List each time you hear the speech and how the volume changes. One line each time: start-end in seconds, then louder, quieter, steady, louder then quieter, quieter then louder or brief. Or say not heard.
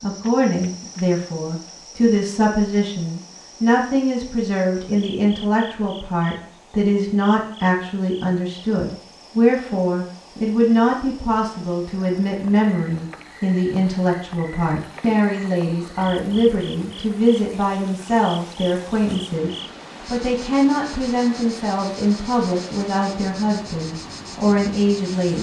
0.0-25.3 steady.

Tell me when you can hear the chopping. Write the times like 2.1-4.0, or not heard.
not heard.